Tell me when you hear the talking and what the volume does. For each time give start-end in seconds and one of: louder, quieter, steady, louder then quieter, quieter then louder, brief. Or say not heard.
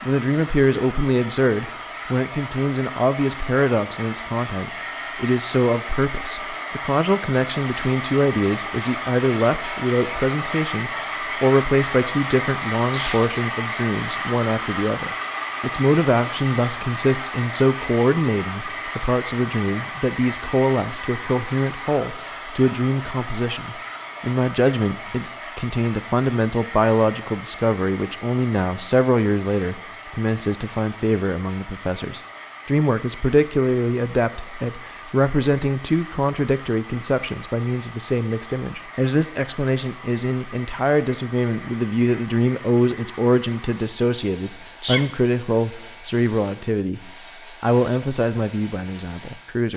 0.0-49.7 steady.